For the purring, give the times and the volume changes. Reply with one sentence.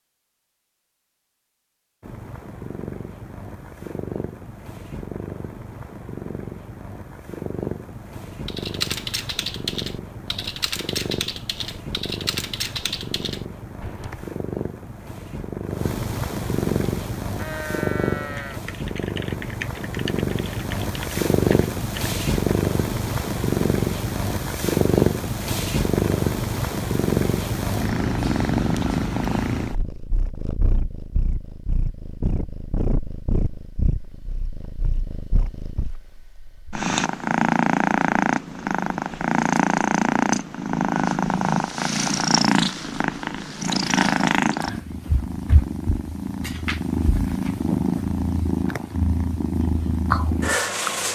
The purring can be heard from 2.0 to 51.0 s, getting louder.